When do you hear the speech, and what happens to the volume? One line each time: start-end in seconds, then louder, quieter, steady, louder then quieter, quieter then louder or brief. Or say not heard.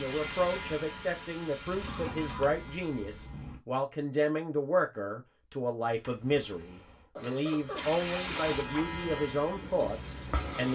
0.0-10.7 steady.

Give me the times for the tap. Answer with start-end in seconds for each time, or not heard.
0.0-2.2, 7.8-10.7.